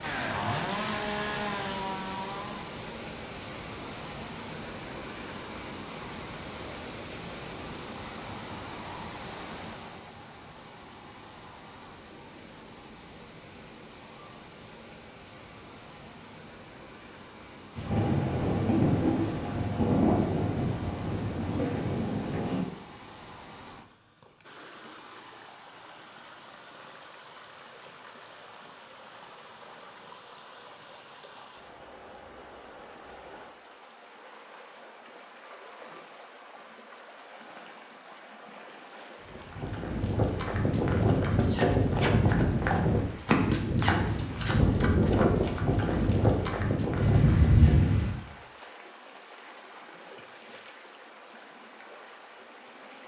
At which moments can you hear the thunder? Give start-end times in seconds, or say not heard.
17.8-22.6, 47.0-48.1.